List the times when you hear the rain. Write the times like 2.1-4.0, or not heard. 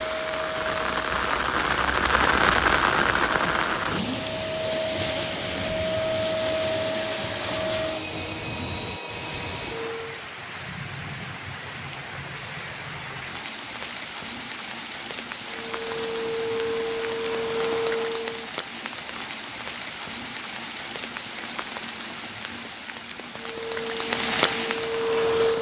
0.0-25.5.